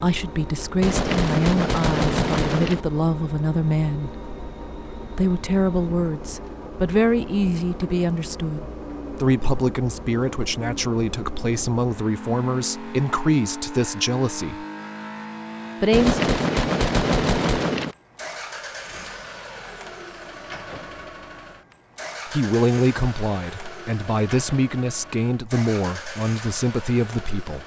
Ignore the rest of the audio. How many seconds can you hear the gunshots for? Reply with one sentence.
You can hear the gunshots for 4 seconds altogether.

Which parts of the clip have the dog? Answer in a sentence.
You can't hear the dog here.